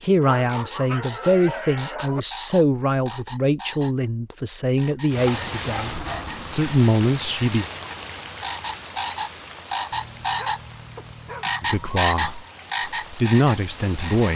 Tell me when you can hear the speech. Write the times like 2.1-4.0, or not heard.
0.0-7.7, 11.6-14.3.